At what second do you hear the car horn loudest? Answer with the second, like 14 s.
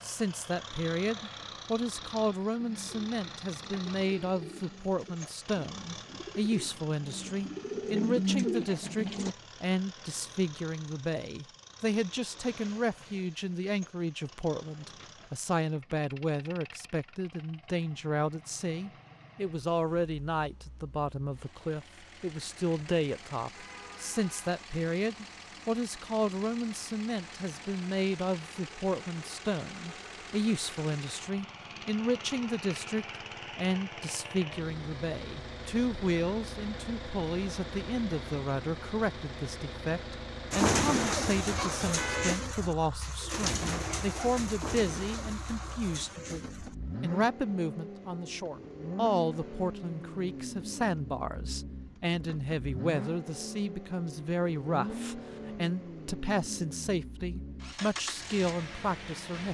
42 s.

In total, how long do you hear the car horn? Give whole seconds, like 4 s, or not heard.
2 s.